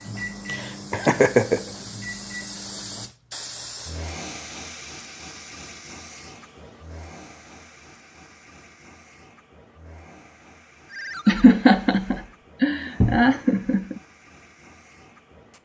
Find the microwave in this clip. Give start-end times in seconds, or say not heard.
0.0-3.1.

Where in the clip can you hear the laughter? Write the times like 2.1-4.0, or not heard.
0.5-1.6, 11.2-14.0.